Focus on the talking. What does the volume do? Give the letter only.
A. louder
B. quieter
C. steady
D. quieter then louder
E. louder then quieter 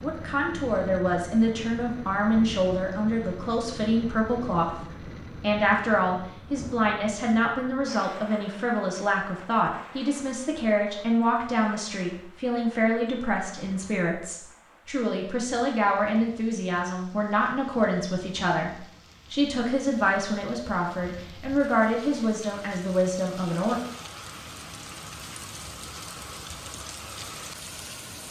C.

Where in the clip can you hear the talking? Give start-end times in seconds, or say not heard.
0.0-4.8, 5.4-23.8.